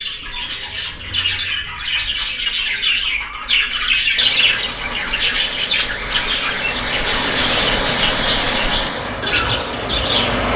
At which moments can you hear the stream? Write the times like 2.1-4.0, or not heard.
4.2-10.5.